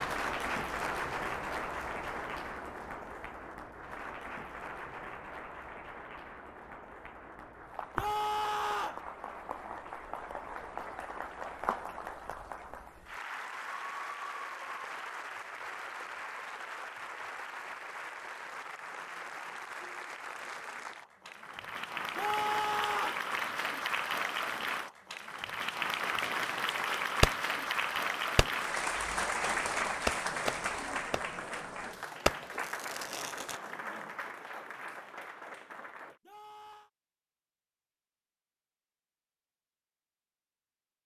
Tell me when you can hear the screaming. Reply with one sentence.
The screaming can be heard from 8.0 to 9.0 s, from 22.1 to 23.2 s and from 36.2 to 36.9 s.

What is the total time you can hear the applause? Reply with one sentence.
The applause can be heard for 36 seconds in total.